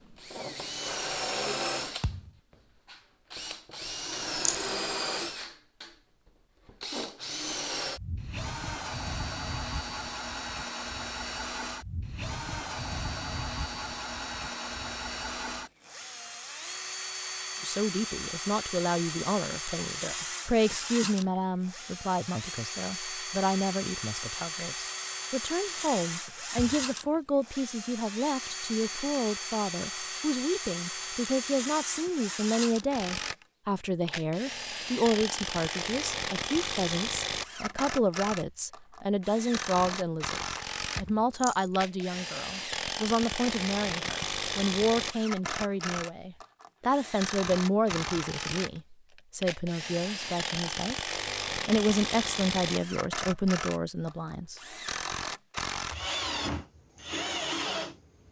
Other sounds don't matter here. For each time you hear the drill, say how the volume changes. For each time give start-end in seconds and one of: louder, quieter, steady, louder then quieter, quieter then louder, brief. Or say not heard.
0.0-58.2 steady.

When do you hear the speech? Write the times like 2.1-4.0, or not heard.
17.6-51.0, 51.6-54.6.